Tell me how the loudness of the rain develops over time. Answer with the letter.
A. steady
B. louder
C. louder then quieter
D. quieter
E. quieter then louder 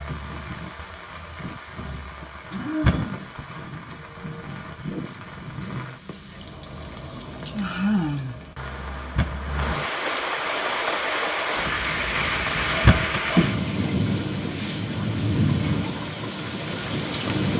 B.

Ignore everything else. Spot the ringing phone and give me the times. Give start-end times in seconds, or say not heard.
not heard.